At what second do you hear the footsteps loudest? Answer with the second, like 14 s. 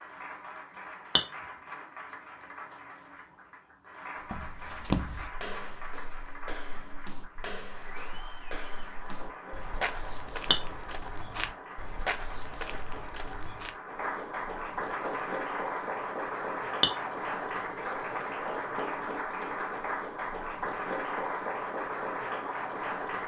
5 s.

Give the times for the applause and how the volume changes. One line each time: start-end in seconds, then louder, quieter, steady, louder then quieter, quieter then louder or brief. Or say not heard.
0.0-23.2 louder.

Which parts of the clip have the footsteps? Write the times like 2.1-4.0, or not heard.
4.2-13.8.